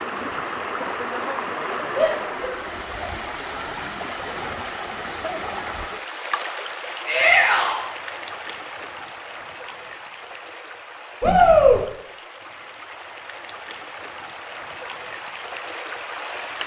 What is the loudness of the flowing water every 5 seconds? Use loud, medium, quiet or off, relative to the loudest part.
loud, loud, medium, loud.